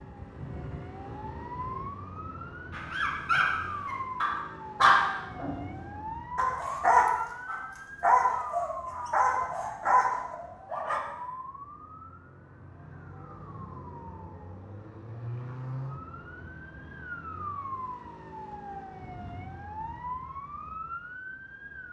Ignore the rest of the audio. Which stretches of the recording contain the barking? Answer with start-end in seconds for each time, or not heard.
2.7-11.0.